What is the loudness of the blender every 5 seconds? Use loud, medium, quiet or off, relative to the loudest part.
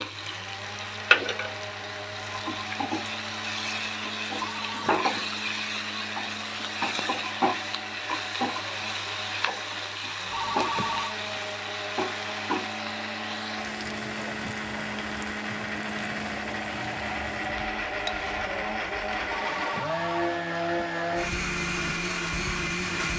medium, medium, medium, loud, loud.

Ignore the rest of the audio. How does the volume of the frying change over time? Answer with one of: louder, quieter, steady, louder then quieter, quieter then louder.
quieter.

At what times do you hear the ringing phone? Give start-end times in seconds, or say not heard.
4.3-5.0, 10.3-11.2, 19.2-20.4.